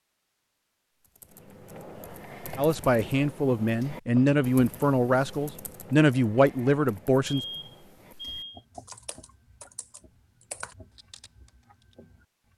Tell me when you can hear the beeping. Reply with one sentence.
The beeping can be heard from 7.2 to 8.6 s.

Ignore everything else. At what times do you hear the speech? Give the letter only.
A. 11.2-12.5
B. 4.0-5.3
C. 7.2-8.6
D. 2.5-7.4
D.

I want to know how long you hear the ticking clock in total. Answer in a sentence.
You can't hear the ticking clock here.